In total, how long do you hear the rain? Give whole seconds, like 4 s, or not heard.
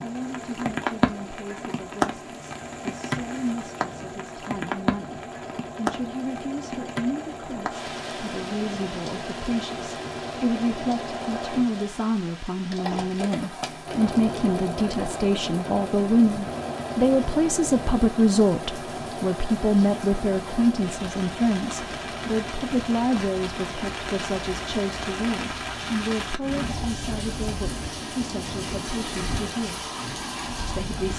31 s.